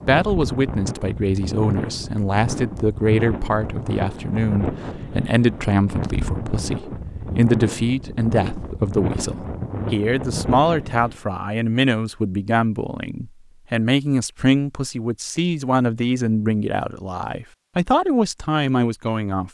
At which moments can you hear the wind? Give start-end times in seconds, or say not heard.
0.0-11.2.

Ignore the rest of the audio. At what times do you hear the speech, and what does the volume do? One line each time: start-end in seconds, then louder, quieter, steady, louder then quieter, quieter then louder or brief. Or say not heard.
0.0-19.4 steady.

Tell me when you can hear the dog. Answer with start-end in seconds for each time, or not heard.
not heard.